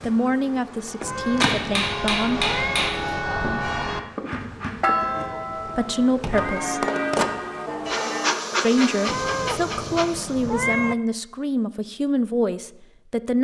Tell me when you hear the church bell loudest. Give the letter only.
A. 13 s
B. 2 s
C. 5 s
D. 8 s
C.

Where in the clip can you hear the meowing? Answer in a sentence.
The meowing can be heard from 1.0 to 2.9 s, from 4.9 to 6.8 s and from 9.1 to 10.9 s.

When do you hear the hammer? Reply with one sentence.
The hammer can be heard from 1.4 to 3.0 s.